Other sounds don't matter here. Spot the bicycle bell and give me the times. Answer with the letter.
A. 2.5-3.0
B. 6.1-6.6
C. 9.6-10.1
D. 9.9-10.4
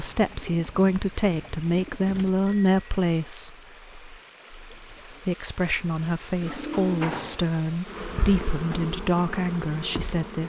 A.